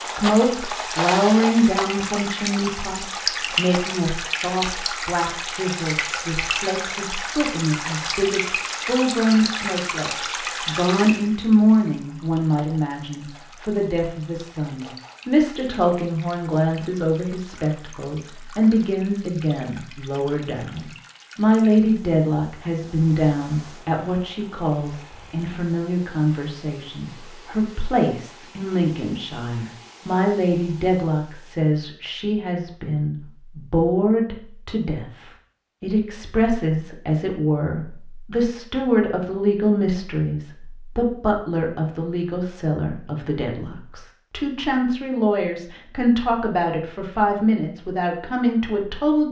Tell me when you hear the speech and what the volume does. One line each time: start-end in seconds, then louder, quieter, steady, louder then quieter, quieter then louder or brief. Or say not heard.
0.0-49.2 steady.